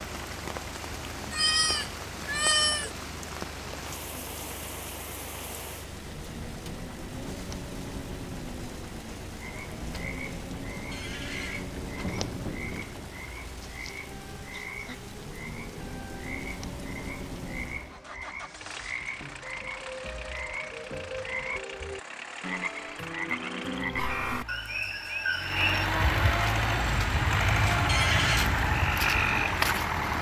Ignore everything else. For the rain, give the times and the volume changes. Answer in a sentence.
The rain can be heard from 0.0 to 17.9 s, at a steady volume.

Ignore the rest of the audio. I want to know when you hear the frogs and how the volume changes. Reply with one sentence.
The frogs can be heard from 9.4 to 30.1 s, getting louder.